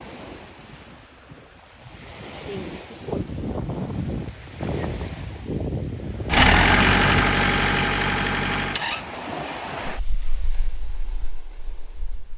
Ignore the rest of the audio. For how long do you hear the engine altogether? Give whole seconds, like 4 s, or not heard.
3 s.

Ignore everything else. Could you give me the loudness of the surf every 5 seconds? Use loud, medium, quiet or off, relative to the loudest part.
loud, loud, quiet.